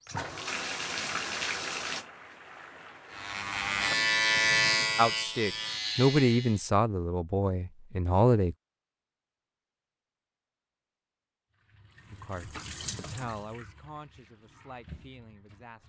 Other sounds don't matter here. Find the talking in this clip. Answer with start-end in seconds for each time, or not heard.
5.0-8.6, 12.1-15.8.